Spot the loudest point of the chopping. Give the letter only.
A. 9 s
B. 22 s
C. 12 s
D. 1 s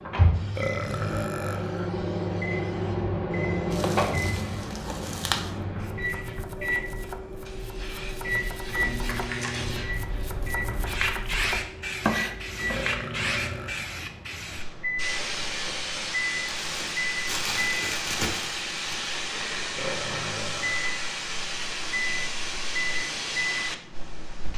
C.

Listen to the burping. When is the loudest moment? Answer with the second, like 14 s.
1 s.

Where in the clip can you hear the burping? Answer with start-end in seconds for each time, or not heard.
0.6-1.9, 12.7-13.9, 19.8-20.9.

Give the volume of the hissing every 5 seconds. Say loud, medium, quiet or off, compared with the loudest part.
quiet, medium, loud, loud, loud.